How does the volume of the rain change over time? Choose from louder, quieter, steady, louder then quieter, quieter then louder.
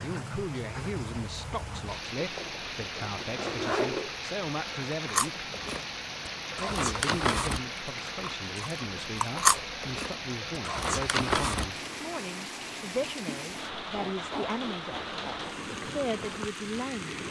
steady.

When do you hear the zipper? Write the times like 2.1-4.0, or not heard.
2.2-4.2, 13.7-15.6.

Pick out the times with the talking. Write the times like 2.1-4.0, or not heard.
0.0-5.5, 6.5-17.2.